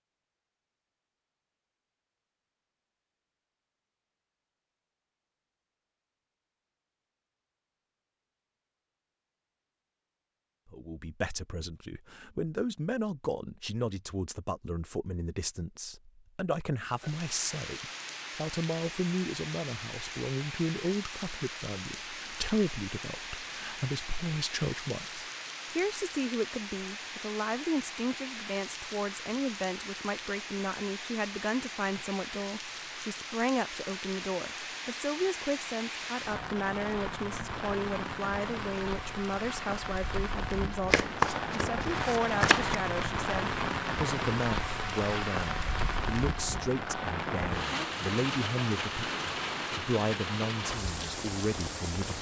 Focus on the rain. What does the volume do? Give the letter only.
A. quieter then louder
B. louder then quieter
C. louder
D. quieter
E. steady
C.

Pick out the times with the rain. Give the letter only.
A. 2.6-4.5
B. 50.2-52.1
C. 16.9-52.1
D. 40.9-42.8
C.